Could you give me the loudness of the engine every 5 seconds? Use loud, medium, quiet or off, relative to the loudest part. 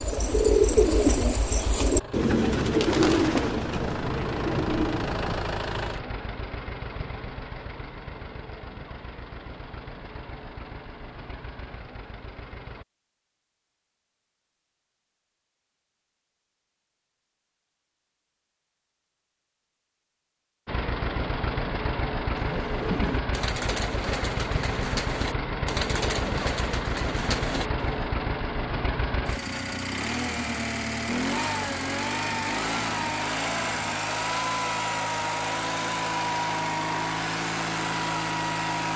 medium, medium, quiet, off, loud, loud, loud, loud.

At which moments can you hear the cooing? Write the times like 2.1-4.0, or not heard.
0.0-5.3, 22.4-28.1.